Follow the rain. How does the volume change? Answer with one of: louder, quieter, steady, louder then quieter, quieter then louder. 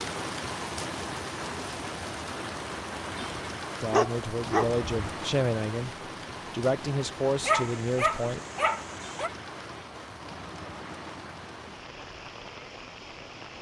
quieter.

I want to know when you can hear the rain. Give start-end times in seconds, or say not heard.
0.0-13.5.